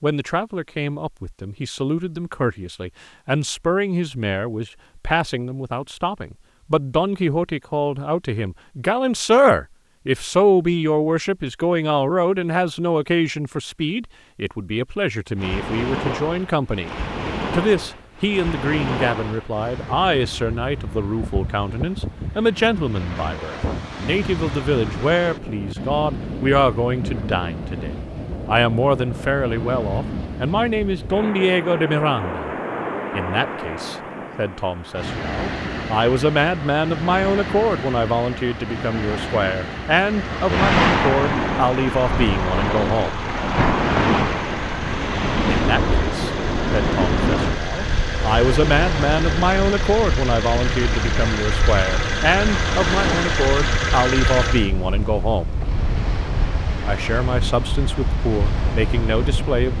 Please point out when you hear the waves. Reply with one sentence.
The waves can be heard from 15.3 to 59.7 s.